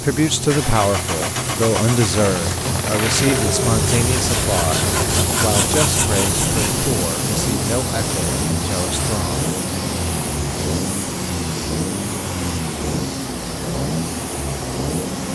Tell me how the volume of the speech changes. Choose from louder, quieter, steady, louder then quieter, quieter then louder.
quieter.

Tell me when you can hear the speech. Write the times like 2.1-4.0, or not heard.
0.0-9.3.